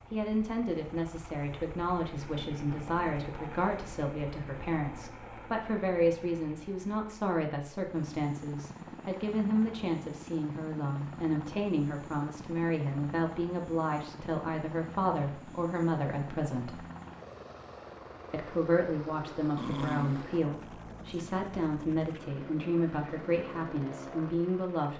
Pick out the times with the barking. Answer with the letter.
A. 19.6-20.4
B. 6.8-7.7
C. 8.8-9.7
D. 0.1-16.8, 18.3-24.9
A.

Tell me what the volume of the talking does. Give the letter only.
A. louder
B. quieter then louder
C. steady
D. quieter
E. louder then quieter
C.